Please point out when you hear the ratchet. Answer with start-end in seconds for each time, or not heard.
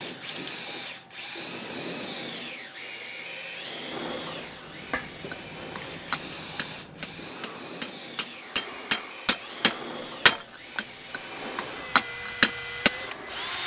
not heard.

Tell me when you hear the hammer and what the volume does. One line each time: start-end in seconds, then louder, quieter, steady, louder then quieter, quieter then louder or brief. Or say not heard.
5.3-12.9 quieter then louder.